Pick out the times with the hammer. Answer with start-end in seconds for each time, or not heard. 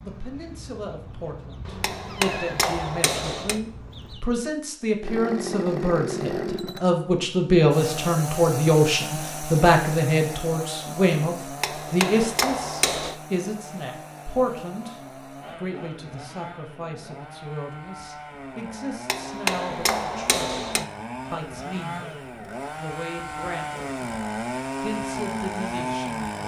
1.8-3.6, 11.6-13.2, 19.1-20.9.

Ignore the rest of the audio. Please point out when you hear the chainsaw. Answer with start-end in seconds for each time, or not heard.
5.0-26.4.